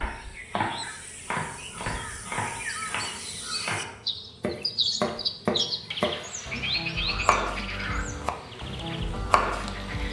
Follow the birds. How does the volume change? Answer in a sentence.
The volume of the birds goes up, then down.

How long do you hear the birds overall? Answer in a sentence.
The birds can be heard for 10 seconds in total.